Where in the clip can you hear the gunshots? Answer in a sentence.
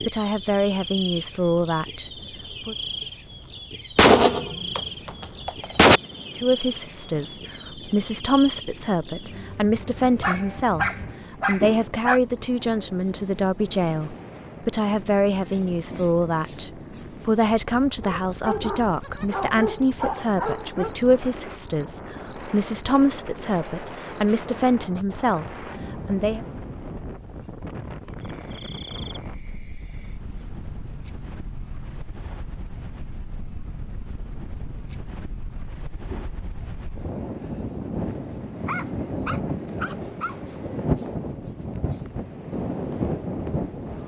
The gunshots can be heard from 4.0 to 6.0 s.